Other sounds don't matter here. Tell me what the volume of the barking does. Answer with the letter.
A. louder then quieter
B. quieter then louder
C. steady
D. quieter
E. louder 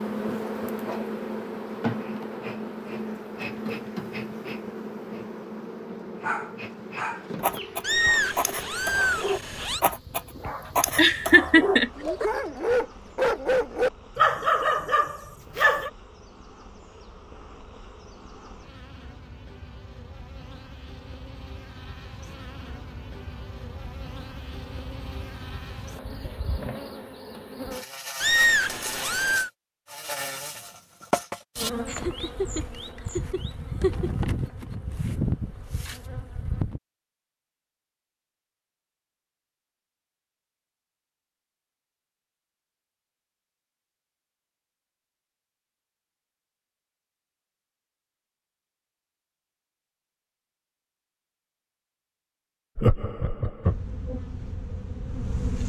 E.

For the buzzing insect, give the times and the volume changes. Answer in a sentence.
You can hear the buzzing insect from 0.0 to 36.8 s, getting quieter then louder; and briefly from 53.6 to 55.6 s.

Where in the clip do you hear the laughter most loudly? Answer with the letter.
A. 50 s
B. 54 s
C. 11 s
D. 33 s
C.